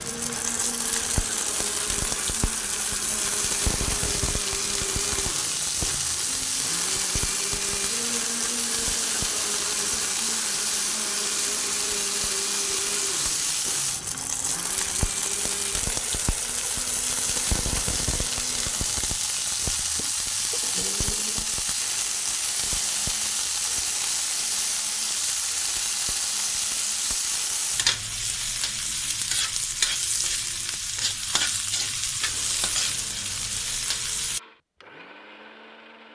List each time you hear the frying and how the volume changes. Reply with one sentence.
The frying can be heard from 0.0 to 34.4 s, at a steady volume.